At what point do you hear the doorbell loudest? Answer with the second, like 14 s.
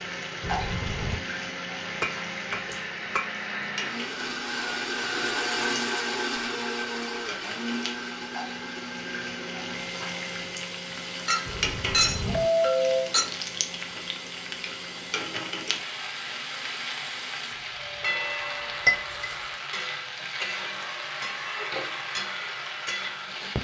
13 s.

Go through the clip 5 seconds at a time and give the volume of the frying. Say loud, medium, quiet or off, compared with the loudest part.
loud, medium, loud, loud, loud.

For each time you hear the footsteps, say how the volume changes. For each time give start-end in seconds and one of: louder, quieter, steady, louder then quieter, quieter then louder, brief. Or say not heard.
not heard.